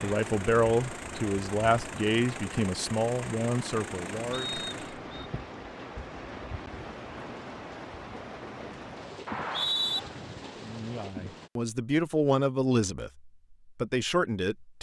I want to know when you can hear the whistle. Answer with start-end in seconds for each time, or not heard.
4.3-5.3, 9.2-10.0.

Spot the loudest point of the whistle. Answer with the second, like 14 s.
10 s.